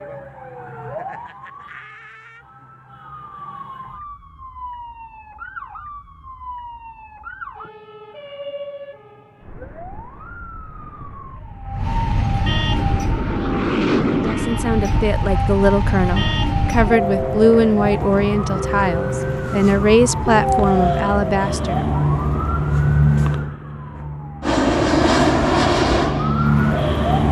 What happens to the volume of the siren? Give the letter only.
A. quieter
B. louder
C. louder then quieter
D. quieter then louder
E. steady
B.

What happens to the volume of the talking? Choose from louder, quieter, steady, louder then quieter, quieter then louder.
steady.